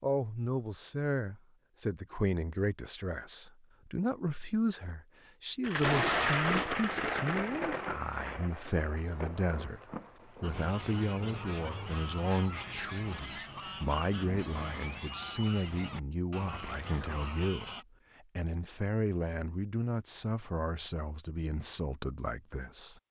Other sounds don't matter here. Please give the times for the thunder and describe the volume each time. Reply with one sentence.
You can hear the thunder from 5.6 to 10.5 s, getting quieter.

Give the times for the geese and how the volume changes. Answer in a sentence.
You can hear the geese from 10.4 to 17.9 s, at a steady volume.